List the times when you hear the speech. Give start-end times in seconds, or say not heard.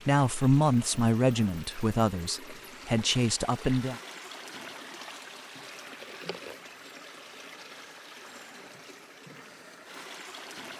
0.1-4.0.